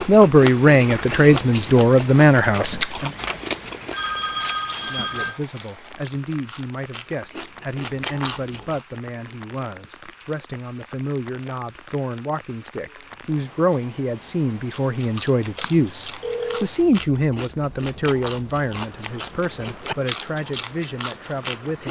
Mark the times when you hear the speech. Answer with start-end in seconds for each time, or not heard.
0.1-3.1, 4.8-21.8.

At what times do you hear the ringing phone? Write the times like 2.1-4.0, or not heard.
3.1-5.4, 15.6-16.7.